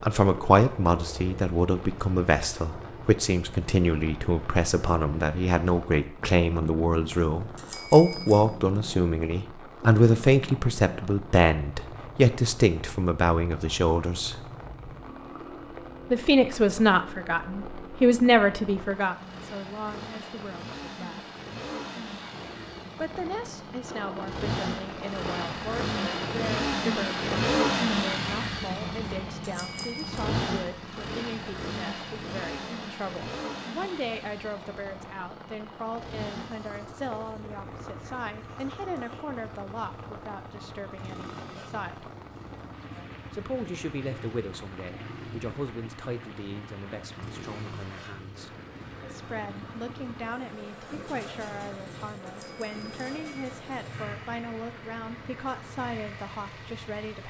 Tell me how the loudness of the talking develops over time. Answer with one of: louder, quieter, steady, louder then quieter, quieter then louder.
quieter.